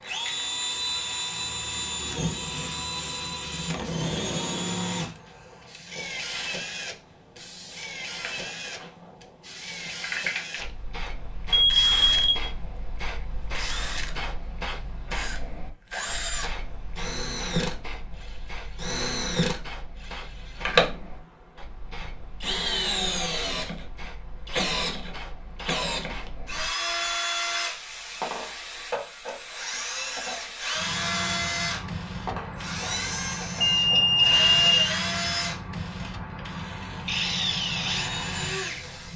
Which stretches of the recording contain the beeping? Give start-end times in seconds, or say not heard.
11.5-12.4, 33.6-35.0.